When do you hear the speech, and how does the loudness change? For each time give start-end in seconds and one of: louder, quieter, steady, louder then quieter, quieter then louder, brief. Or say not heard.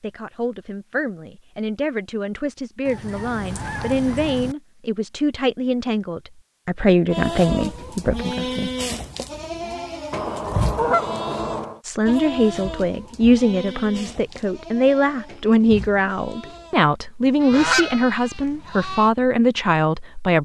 0.0-8.7 louder
11.8-20.4 steady.